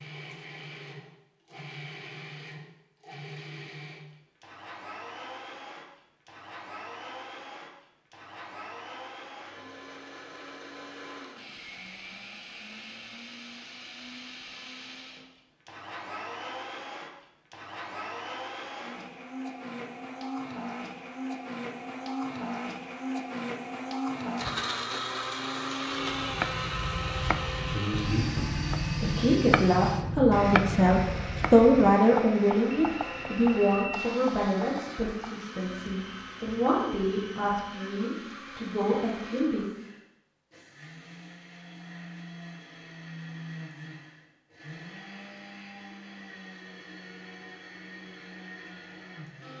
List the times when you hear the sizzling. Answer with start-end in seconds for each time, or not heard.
not heard.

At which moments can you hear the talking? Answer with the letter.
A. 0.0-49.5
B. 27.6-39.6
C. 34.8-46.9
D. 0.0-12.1
B.